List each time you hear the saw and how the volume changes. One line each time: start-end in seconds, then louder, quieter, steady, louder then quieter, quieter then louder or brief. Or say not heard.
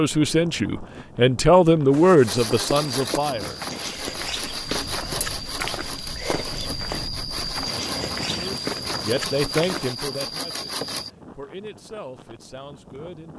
2.2-11.1 steady.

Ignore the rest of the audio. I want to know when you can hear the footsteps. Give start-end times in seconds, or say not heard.
1.9-9.9.